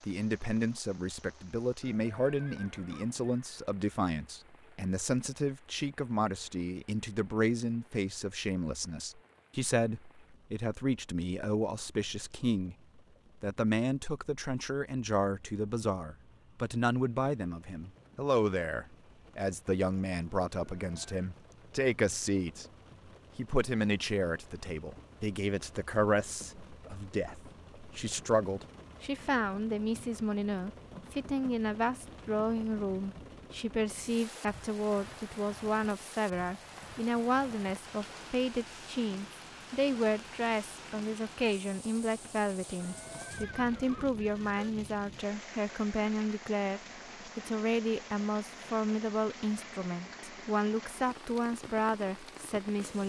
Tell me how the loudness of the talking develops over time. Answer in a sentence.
The loudness of the talking stays about the same.